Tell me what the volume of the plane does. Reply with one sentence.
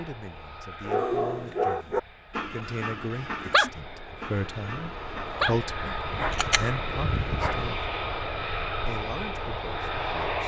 The volume of the plane goes up.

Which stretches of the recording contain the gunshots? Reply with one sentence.
The gunshots can be heard from 6.1 to 7.7 s.